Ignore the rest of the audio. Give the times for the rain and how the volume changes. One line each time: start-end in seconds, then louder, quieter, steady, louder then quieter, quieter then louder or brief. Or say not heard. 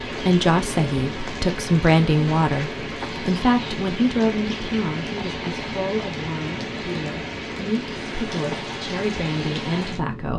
0.0-10.3 steady.